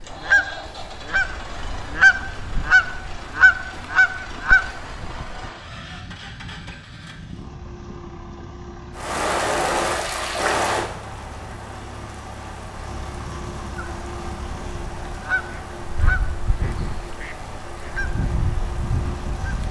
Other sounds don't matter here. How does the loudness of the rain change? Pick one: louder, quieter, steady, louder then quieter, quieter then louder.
quieter.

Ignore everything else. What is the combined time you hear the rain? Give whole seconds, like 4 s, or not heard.
11 s.